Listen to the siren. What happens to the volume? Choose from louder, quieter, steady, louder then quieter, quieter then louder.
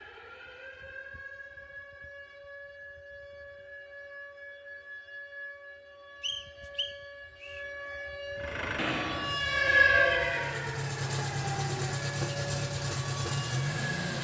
louder then quieter.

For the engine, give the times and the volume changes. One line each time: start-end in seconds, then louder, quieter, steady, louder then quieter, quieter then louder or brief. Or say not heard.
8.3-14.1 quieter then louder.